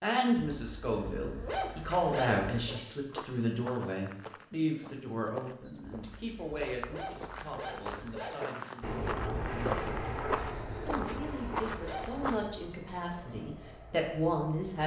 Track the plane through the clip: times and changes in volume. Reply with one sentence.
The plane can be heard from 8.8 to 14.8 s, getting quieter.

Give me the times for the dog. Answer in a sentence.
You can hear the dog from 0.3 to 2.8 s, from 5.8 to 8.4 s and from 10.8 to 12.6 s.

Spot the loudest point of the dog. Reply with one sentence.
The volume of the dog peaks at 2 seconds.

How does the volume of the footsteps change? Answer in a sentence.
The loudness of the footsteps goes up.